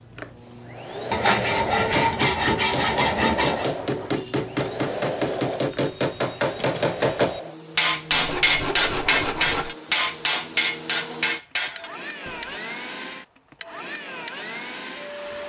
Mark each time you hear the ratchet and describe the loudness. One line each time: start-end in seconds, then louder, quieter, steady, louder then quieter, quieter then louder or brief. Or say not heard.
not heard.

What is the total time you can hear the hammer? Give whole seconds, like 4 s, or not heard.
11 s.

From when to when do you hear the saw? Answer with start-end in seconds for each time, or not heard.
1.1-3.7, 8.1-9.8.